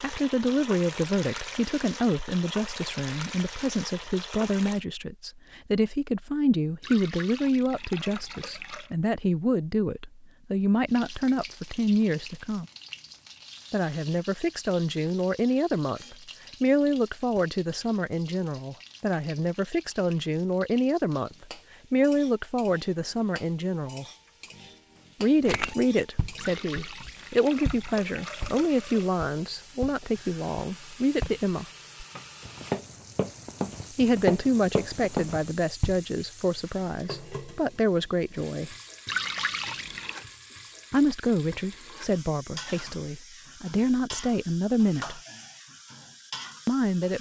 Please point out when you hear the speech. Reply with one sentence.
The speech can be heard from 0.0 to 12.7 s, from 13.7 to 24.1 s, from 25.2 to 31.6 s, from 34.0 to 38.8 s, from 40.9 to 45.2 s and from 46.6 to 47.1 s.